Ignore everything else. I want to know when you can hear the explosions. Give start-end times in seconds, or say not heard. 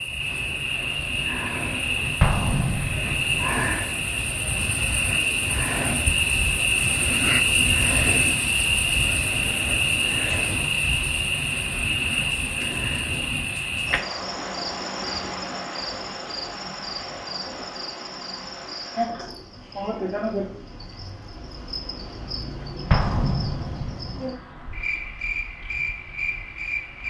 2.2-3.2, 22.9-24.2.